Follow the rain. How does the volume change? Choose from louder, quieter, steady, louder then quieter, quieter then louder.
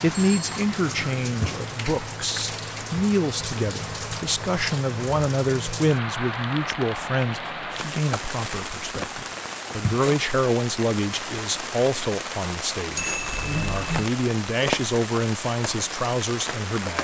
steady.